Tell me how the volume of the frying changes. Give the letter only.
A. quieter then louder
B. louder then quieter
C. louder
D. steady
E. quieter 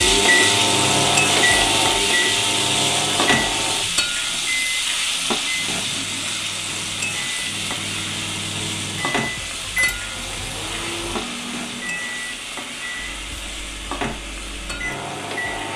E.